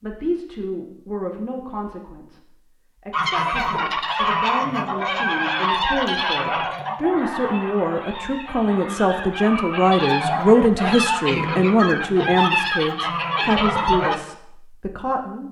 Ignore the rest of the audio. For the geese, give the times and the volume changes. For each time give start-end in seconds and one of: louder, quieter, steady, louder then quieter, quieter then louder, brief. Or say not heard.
3.1-14.2 quieter then louder.